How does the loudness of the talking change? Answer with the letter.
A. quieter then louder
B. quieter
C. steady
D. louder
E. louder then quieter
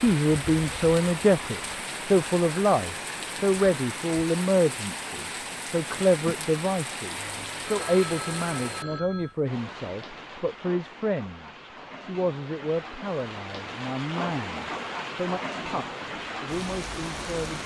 B.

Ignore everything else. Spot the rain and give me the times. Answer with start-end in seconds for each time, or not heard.
0.0-17.6.